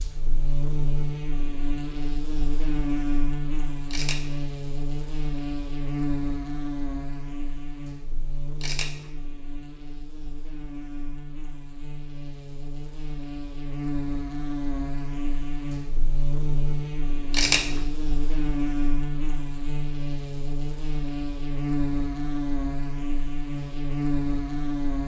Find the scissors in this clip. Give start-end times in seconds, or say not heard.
3.9-4.4, 8.6-9.1, 17.3-17.9.